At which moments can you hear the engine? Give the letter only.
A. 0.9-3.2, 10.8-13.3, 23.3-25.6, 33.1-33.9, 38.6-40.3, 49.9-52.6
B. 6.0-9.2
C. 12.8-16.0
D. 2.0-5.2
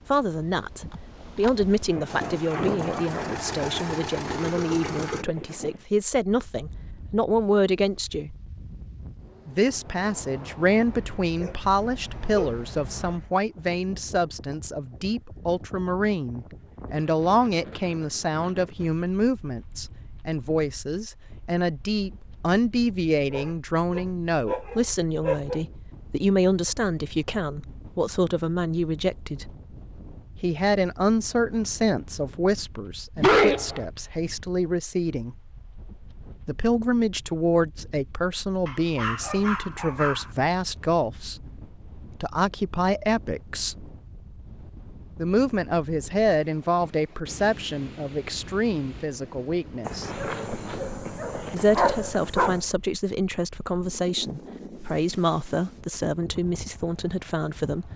D.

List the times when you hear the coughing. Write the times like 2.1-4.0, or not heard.
not heard.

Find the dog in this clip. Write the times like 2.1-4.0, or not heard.
0.9-3.2, 10.8-13.3, 23.3-25.6, 33.1-33.9, 38.6-40.3, 49.9-52.6.